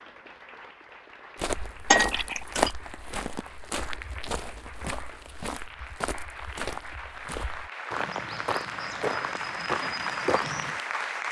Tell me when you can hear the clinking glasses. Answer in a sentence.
The clinking glasses can be heard from 1.9 to 2.7 s.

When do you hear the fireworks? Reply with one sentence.
You can't hear the fireworks here.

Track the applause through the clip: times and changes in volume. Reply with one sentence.
You can hear the applause from 0.0 to 11.2 s, getting louder.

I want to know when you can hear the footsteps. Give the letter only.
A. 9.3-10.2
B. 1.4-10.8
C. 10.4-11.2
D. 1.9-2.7
B.